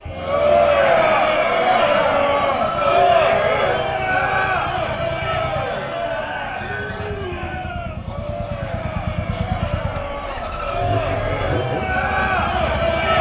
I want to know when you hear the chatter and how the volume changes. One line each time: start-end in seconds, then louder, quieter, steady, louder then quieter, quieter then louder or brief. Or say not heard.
0.0-13.1 quieter then louder.